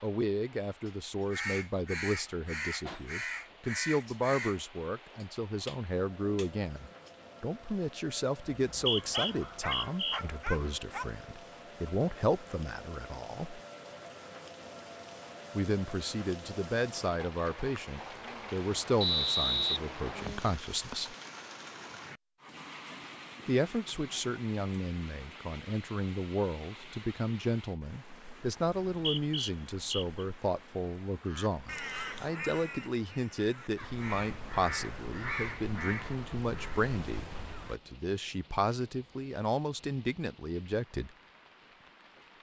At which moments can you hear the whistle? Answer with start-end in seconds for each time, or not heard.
8.7-10.2, 19.0-20.5, 28.9-30.2.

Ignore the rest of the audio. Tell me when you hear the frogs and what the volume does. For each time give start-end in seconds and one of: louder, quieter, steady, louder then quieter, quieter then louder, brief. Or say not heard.
not heard.